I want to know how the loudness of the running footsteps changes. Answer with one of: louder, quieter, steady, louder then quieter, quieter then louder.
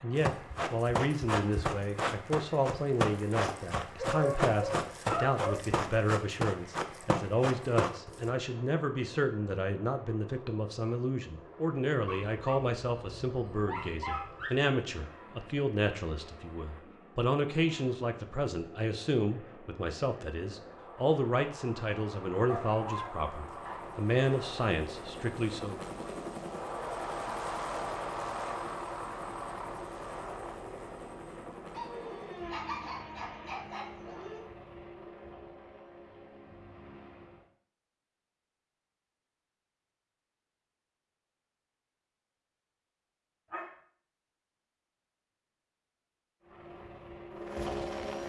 steady.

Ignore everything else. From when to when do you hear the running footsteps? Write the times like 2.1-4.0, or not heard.
0.2-8.3.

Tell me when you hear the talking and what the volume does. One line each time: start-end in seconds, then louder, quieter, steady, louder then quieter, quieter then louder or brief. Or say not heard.
0.0-25.9 steady.